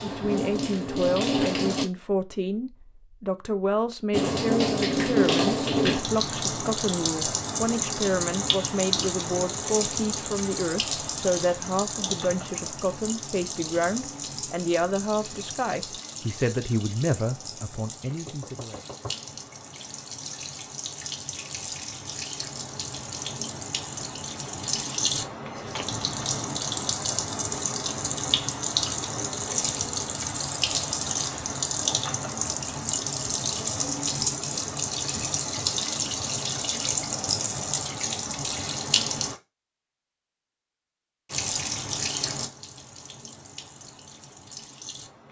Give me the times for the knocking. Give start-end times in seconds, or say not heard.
18.1-19.4.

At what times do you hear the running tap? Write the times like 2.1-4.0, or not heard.
0.0-1.9, 4.1-39.4, 41.3-45.2.